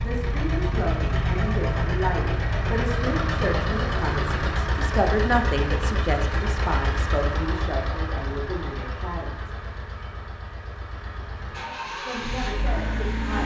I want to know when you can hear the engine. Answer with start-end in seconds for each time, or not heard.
0.0-13.4.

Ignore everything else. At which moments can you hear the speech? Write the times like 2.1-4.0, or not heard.
0.0-9.5, 12.1-13.4.